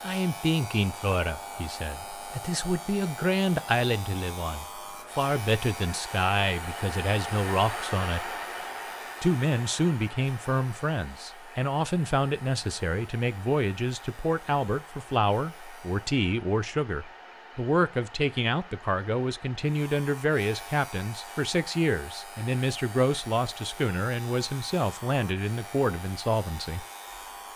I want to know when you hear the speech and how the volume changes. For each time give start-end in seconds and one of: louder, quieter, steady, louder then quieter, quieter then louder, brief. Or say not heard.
0.0-8.3 steady
9.2-26.9 steady.